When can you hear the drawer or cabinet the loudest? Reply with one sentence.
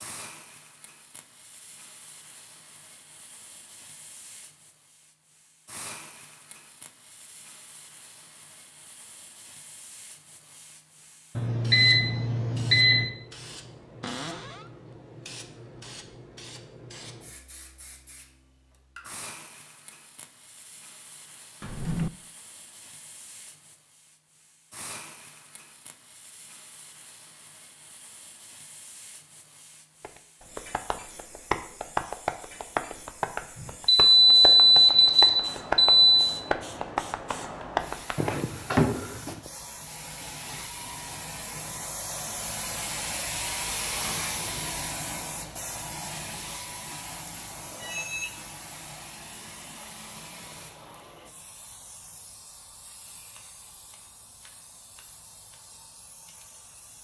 The volume of the drawer or cabinet peaks at 39 seconds.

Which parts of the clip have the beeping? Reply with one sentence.
The beeping can be heard from 11.3 to 13.1 s, from 33.9 to 36.2 s and from 47.7 to 48.4 s.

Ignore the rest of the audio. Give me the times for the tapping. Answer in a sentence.
The tapping can be heard from 30.0 to 39.4 s.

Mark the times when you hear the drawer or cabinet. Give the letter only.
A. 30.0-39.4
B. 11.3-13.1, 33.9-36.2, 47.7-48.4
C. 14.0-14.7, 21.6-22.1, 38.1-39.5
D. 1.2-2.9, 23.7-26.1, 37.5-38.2
C.